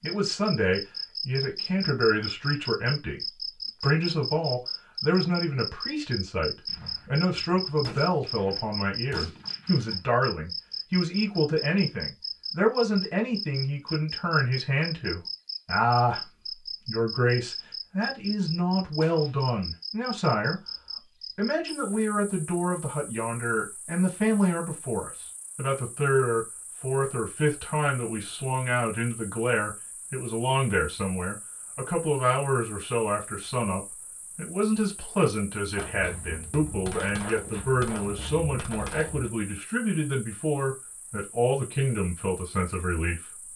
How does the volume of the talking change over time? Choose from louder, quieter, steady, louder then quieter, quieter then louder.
steady.